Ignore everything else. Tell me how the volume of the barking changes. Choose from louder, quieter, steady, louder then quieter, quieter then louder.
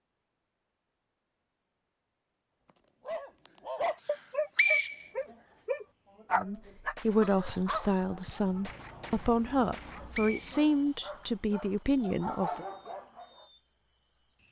quieter then louder.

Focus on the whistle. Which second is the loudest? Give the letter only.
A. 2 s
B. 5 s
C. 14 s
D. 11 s
B.